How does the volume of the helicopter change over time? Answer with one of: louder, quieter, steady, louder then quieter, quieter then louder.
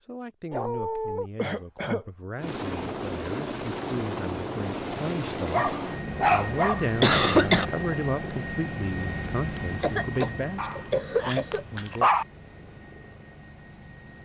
quieter.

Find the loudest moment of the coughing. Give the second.
7 s.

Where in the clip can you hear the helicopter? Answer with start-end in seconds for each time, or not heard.
2.4-14.2.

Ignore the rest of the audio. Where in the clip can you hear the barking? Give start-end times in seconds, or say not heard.
0.5-1.3, 5.5-6.8, 10.6-12.2.